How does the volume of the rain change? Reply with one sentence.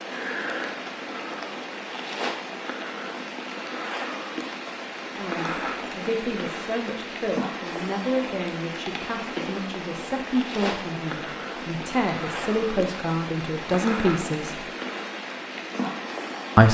The loudness of the rain stays about the same.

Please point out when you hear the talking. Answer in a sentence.
The talking can be heard from 5.2 to 14.7 s.